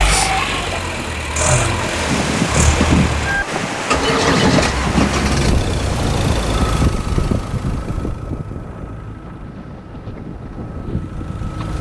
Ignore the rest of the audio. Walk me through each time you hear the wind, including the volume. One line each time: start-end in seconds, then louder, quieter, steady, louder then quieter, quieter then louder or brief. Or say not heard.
1.8-11.7 quieter.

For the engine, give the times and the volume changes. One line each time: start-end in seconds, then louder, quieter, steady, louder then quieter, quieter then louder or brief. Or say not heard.
0.0-11.7 quieter.